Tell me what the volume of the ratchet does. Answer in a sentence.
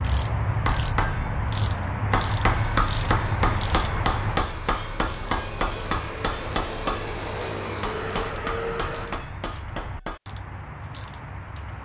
The volume of the ratchet goes down.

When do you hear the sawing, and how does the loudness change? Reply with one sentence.
The sawing can't be heard in this clip.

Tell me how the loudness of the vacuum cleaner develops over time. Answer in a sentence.
The volume of the vacuum cleaner goes up.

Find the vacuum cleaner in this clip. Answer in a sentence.
You can hear the vacuum cleaner from 2.5 to 9.2 s.